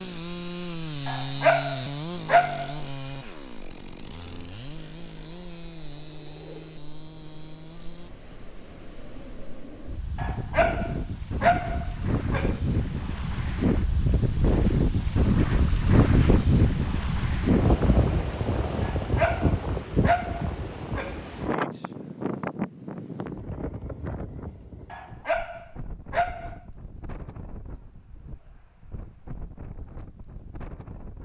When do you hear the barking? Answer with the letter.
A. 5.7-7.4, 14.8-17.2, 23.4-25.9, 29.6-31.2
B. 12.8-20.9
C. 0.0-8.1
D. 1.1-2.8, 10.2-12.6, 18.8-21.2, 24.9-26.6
D.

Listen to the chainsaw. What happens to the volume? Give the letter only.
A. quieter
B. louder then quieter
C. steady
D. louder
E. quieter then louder
A.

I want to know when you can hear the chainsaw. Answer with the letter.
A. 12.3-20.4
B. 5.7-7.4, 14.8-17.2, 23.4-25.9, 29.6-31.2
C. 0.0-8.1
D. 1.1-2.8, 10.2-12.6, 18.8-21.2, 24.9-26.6
C.